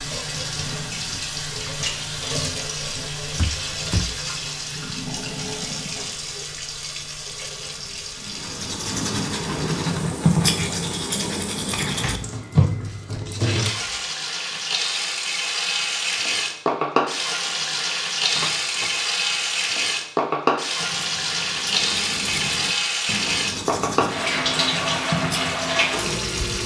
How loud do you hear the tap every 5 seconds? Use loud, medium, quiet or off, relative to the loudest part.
medium, medium, medium, loud, loud, loud.